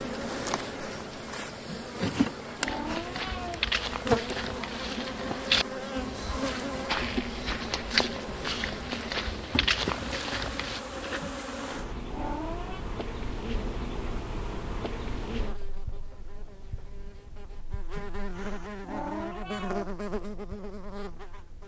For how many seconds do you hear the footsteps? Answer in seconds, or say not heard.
8 s.